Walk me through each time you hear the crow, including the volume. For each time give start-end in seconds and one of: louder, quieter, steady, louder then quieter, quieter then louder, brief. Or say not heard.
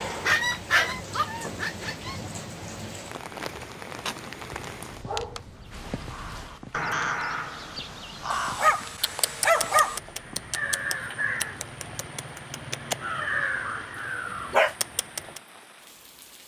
5.5-15.4 steady.